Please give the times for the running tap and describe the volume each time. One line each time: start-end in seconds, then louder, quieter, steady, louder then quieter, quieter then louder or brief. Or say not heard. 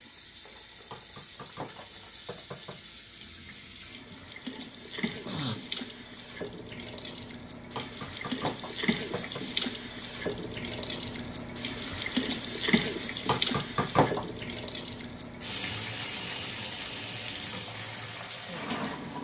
0.0-19.1 louder then quieter.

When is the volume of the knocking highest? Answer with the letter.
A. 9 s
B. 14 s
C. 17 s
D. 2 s
B.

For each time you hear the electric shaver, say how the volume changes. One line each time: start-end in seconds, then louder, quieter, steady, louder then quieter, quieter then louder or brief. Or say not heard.
not heard.